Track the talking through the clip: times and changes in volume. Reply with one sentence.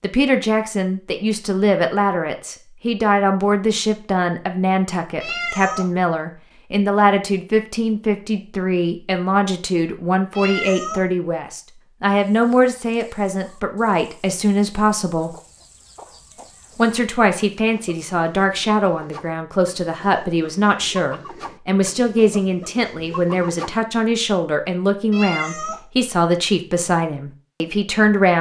You can hear the talking from 0.0 to 15.3 s, at a steady volume; and from 16.8 to 28.3 s, at a steady volume.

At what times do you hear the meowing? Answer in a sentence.
You can hear the meowing from 5.2 to 5.8 s, from 10.3 to 11.0 s and from 25.1 to 25.8 s.